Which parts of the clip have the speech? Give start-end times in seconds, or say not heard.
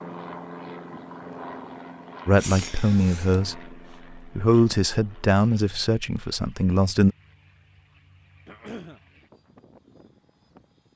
2.2-7.2.